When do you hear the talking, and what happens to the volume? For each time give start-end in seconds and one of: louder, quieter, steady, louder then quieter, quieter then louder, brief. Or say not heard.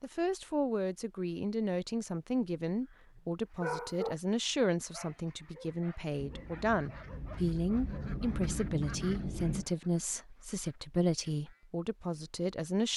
0.0-12.9 steady.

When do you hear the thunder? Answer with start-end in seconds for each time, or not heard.
6.2-9.7.